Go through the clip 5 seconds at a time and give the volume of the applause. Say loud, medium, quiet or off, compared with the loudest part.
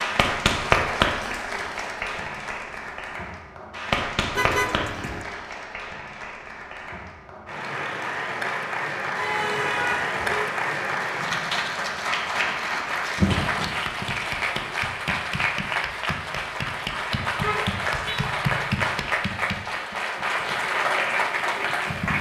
loud, medium, loud, loud, loud.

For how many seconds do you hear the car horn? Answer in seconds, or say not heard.
3 s.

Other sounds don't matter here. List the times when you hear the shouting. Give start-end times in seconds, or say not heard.
not heard.